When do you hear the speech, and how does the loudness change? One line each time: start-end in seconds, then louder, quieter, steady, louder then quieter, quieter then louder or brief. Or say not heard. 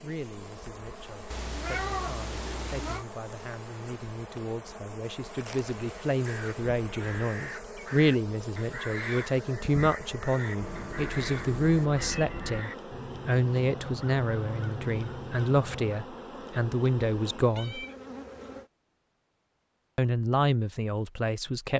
0.0-17.9 louder
19.9-21.7 brief.